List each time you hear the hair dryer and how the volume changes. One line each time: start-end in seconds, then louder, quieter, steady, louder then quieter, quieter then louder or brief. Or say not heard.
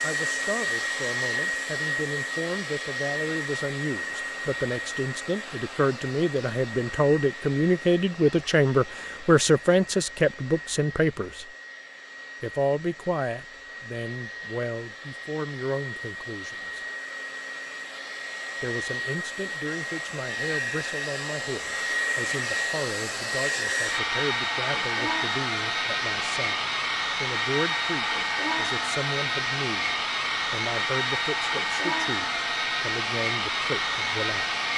0.0-34.7 quieter then louder.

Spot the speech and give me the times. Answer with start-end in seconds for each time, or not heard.
0.0-11.4, 12.4-16.9, 18.6-34.5.